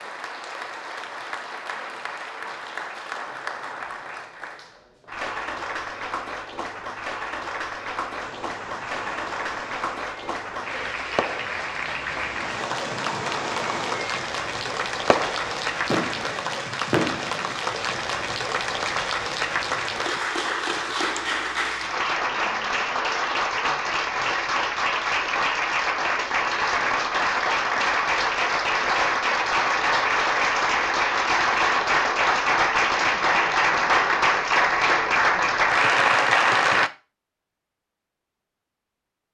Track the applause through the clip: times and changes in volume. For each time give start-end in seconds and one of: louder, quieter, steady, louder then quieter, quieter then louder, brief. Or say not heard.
0.0-36.9 louder.